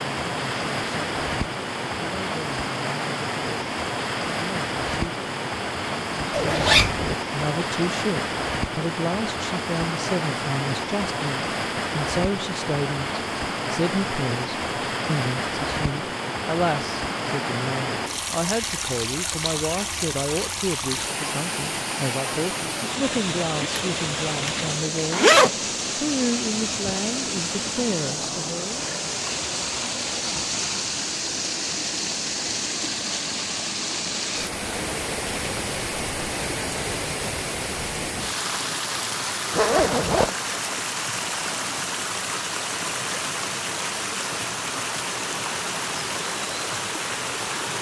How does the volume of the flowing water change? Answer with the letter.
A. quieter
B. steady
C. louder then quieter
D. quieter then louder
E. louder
B.